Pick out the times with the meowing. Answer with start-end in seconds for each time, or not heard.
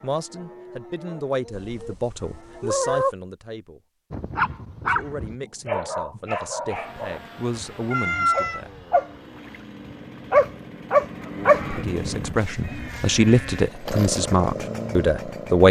1.5-3.1, 7.9-8.6, 12.6-13.7.